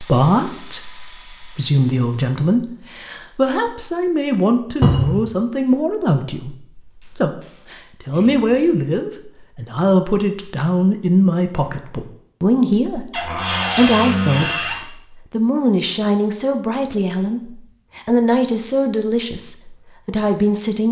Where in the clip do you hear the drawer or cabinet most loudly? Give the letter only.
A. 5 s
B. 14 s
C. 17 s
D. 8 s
A.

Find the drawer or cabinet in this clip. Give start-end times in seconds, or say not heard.
4.8-5.2, 13.1-14.8.